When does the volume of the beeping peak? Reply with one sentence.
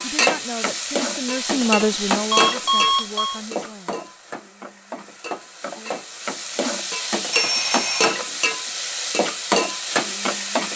The loudest moment of the beeping is at 3 seconds.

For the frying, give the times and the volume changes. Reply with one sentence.
You can hear the frying from 0.0 to 10.7 s, getting quieter then louder.